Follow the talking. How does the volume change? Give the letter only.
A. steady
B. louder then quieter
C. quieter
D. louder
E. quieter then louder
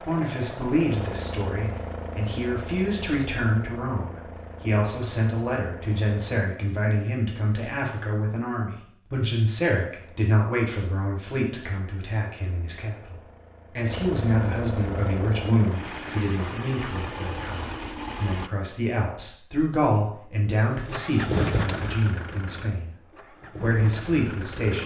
A.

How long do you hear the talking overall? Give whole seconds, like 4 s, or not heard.
25 s.